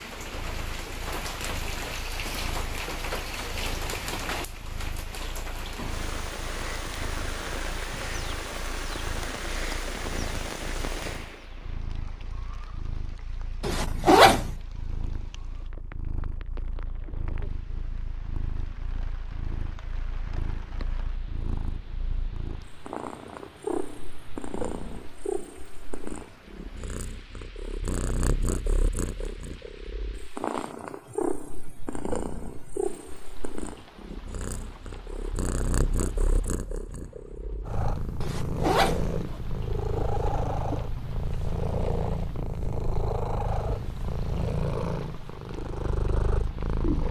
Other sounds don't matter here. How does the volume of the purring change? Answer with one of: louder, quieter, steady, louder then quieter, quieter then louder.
louder.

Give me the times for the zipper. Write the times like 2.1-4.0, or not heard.
13.6-14.5, 38.2-39.4.